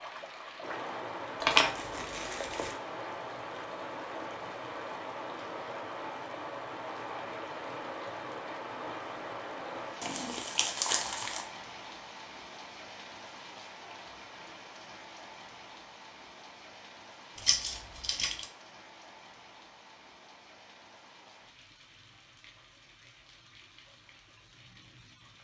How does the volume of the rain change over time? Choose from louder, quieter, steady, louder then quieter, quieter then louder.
quieter.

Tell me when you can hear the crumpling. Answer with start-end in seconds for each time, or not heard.
1.4-2.8, 10.0-11.4, 17.4-18.4.